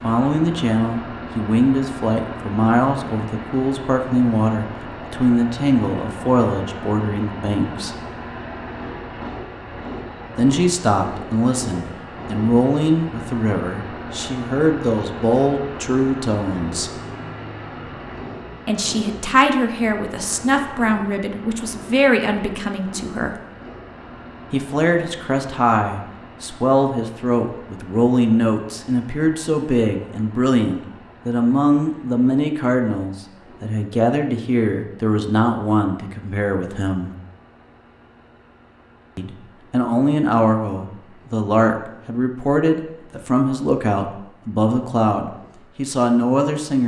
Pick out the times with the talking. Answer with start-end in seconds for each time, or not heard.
0.0-8.0, 10.3-16.9, 18.6-23.4, 24.5-37.1, 39.1-46.8.